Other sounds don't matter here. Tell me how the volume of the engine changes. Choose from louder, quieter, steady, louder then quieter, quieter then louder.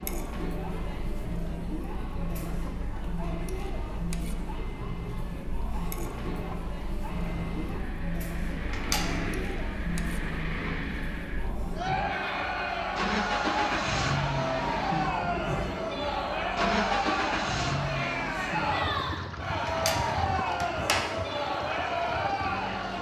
louder then quieter.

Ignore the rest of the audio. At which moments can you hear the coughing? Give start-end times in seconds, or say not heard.
not heard.